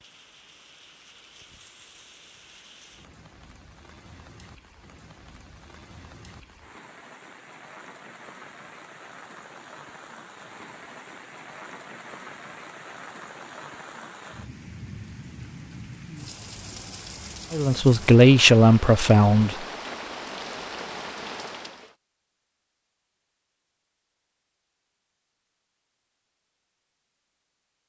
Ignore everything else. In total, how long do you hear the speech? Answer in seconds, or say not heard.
2 s.